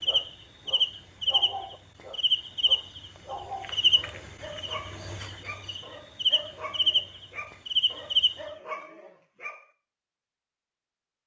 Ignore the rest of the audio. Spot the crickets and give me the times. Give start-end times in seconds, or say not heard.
0.0-8.3.